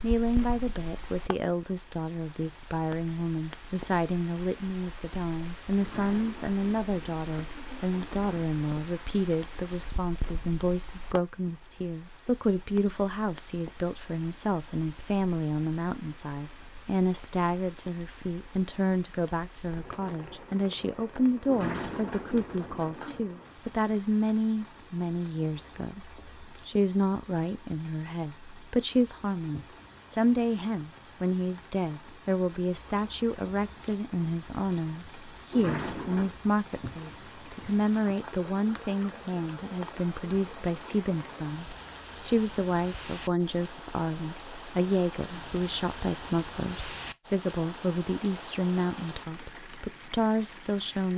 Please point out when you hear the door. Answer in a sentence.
The door can be heard from 5.8 to 8.3 s, from 21.4 to 23.2 s and from 35.5 to 36.4 s.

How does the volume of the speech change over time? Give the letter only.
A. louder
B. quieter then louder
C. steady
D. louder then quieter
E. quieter
C.